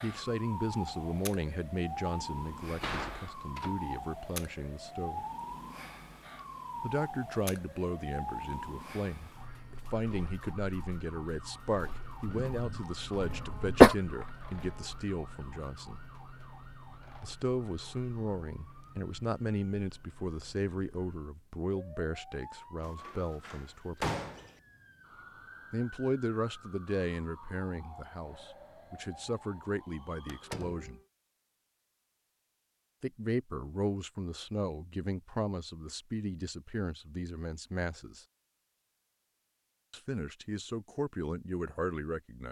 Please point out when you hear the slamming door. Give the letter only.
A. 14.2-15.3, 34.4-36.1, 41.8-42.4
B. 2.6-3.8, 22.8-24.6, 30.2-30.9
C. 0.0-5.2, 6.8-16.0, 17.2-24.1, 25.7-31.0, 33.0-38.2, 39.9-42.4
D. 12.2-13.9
B.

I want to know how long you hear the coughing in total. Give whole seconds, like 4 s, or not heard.
2 s.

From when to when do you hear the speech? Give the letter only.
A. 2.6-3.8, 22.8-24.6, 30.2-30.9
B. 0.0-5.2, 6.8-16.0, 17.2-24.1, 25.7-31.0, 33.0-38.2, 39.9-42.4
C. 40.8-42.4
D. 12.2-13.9
B.